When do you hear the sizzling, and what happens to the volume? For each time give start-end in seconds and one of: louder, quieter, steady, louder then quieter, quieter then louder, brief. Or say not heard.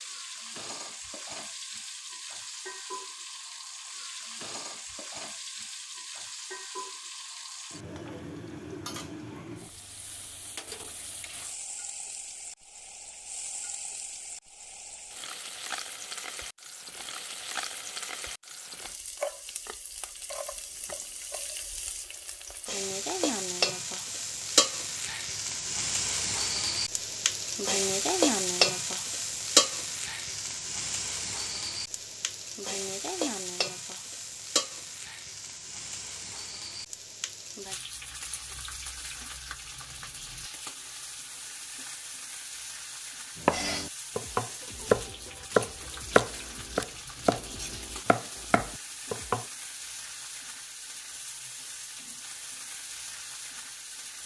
0.0-54.2 louder then quieter.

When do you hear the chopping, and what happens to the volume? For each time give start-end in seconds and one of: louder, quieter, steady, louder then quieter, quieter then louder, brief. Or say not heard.
43.4-49.5 louder then quieter.